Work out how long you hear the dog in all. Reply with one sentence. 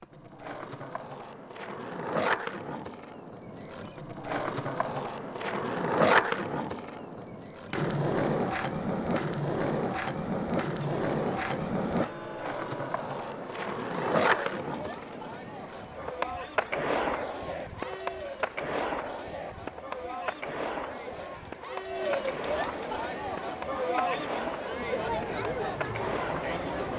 You can't hear the dog here.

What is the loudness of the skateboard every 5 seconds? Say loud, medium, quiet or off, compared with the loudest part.
medium, loud, loud, medium, medium, medium.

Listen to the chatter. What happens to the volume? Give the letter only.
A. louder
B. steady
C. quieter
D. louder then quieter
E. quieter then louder
A.